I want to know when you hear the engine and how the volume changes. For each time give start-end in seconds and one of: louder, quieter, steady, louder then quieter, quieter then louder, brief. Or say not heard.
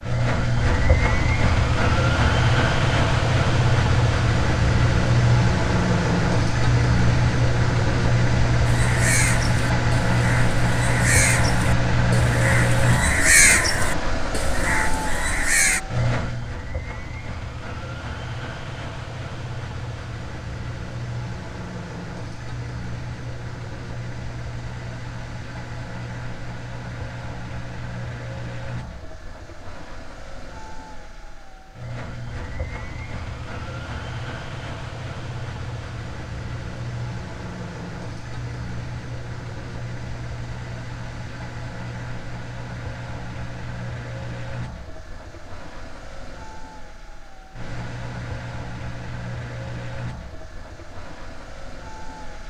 0.0-52.4 quieter.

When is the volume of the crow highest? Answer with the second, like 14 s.
13 s.